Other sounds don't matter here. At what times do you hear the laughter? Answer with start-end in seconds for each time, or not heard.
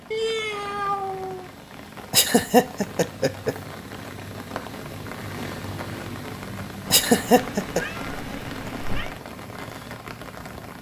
2.1-3.5, 6.9-7.8.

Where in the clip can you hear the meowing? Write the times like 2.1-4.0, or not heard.
0.1-1.5, 6.8-9.2.